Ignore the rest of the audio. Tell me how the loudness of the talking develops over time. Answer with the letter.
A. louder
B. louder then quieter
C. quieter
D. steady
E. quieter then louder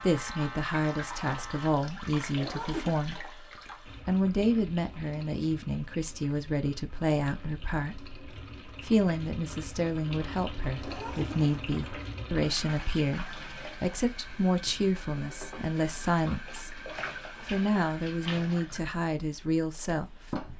D.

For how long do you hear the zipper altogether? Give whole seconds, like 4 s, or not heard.
2 s.